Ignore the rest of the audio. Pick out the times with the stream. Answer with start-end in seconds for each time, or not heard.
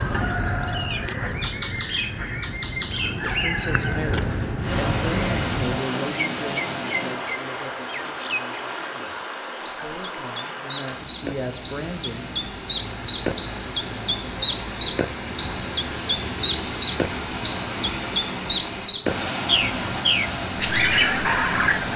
4.6-21.9.